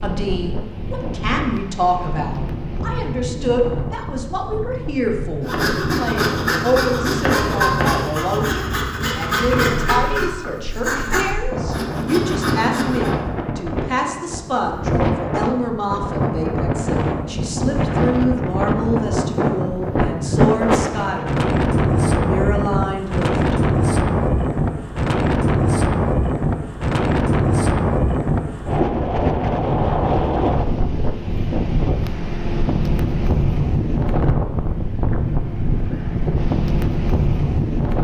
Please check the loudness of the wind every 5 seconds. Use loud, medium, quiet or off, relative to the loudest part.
medium, quiet, medium, loud, loud, loud, loud, loud.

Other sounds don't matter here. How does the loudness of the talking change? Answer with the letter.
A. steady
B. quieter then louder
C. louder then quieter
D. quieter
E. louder
A.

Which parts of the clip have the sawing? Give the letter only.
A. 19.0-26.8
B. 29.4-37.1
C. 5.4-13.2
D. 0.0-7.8
C.